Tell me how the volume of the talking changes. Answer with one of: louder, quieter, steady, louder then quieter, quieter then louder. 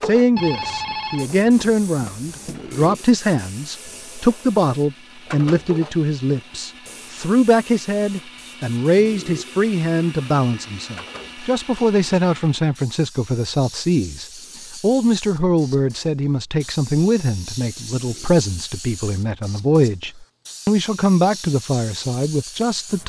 steady.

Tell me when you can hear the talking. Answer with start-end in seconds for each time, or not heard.
0.0-23.0.